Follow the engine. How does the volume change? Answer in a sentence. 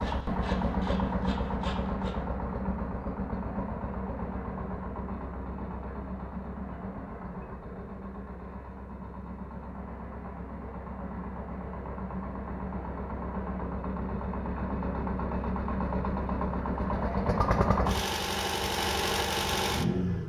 The loudness of the engine goes down, then up.